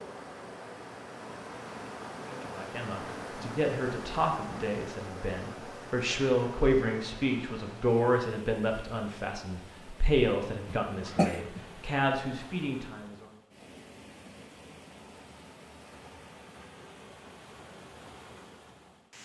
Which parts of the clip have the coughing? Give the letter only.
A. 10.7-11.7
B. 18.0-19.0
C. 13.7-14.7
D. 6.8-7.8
A.